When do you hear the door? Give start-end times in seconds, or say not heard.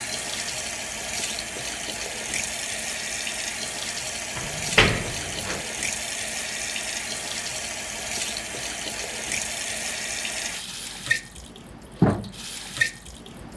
4.3-5.7.